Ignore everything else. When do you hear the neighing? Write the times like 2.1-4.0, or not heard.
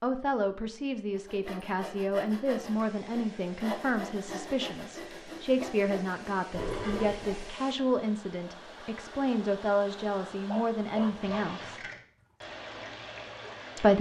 6.5-7.5.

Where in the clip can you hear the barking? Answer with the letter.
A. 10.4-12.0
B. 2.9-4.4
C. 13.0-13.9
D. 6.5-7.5
A.